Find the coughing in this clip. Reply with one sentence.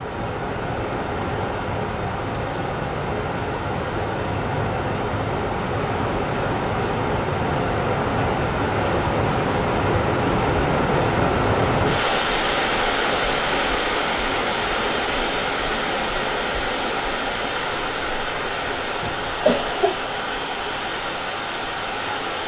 You can hear the coughing from 19.0 to 20.1 s.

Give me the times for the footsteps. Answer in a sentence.
You can't hear the footsteps here.